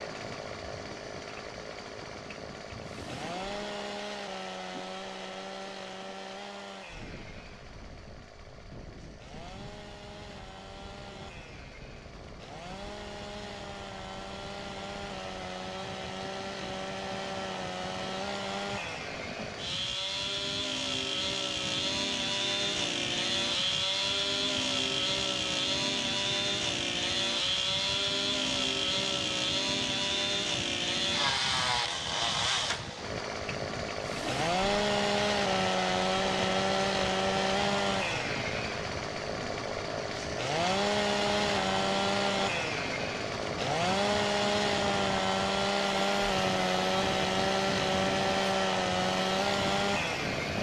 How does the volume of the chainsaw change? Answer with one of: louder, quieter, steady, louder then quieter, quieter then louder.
louder.